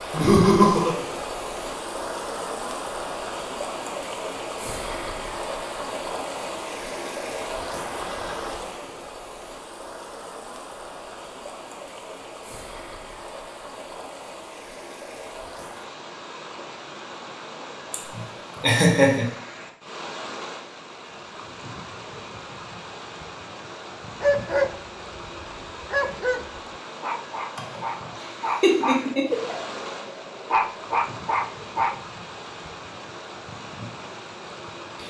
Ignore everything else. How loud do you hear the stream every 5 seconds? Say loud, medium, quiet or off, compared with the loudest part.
loud, loud, medium, medium, medium, medium, medium.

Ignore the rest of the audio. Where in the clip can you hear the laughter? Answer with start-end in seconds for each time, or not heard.
0.1-0.9, 17.9-19.3, 27.6-29.6.